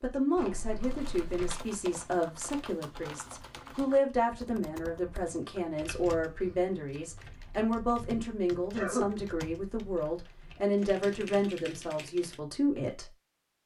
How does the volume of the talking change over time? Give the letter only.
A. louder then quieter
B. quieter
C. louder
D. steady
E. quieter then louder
D.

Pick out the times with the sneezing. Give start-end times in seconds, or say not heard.
8.5-9.1.